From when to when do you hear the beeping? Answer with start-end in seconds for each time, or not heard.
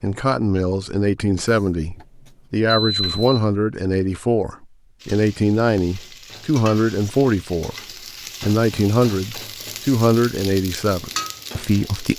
1.4-3.5.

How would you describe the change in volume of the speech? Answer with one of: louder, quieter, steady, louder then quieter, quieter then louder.
steady.